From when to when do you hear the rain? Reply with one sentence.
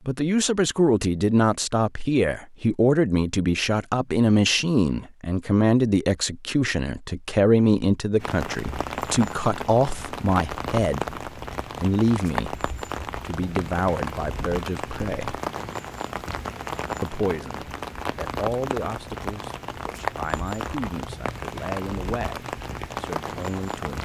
You can hear the rain from 8.2 to 24.0 s.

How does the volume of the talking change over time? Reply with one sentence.
The volume of the talking goes down.